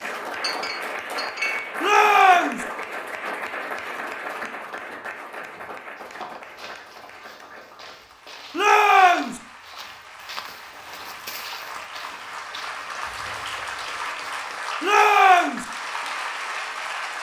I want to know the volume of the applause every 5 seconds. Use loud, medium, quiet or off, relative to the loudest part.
loud, medium, loud, loud.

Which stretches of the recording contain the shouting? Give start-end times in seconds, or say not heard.
1.8-2.6, 8.6-9.4, 14.8-15.7.